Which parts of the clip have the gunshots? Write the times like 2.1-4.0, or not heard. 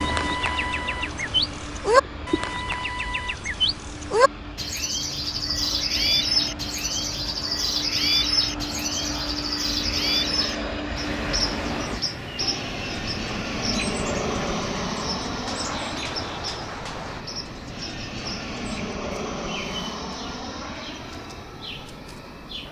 15.4-17.2.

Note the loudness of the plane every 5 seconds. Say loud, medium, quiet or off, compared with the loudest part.
medium, medium, loud, loud, medium.